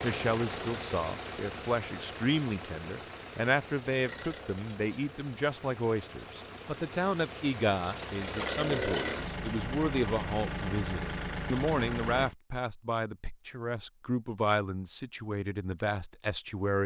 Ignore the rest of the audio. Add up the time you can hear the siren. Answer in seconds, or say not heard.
not heard.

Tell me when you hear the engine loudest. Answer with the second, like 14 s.
9 s.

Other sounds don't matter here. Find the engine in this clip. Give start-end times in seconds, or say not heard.
0.0-12.3.